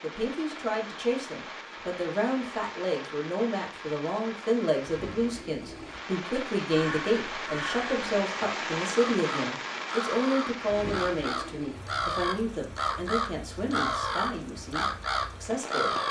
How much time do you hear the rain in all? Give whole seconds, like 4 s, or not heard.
16 s.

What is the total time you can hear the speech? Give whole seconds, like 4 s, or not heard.
16 s.